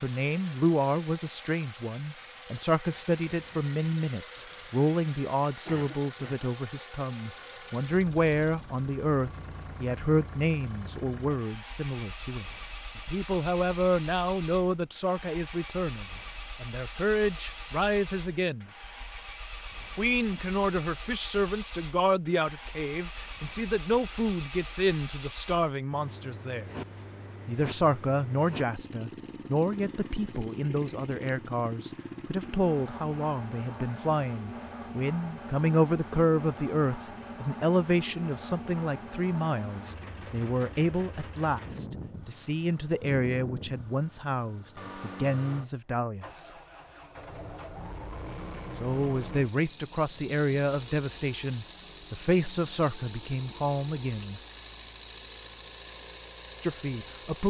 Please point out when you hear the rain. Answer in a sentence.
You can't hear the rain here.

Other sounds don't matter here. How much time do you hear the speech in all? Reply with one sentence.
You can hear the speech for 51 seconds altogether.